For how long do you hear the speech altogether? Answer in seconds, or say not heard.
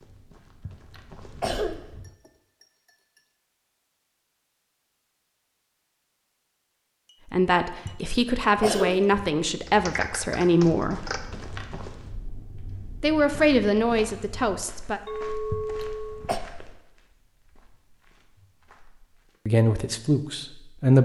7 s.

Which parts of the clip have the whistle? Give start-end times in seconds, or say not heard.
not heard.